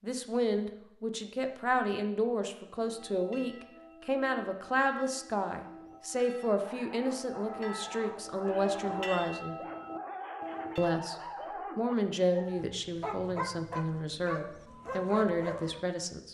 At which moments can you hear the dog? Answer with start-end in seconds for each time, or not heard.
6.5-15.8.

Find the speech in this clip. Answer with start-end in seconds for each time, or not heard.
0.0-9.6, 10.8-11.2, 11.8-16.2.